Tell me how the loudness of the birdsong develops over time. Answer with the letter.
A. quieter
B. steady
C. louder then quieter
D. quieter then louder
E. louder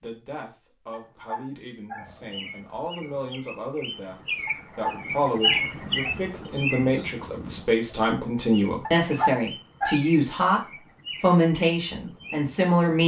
C.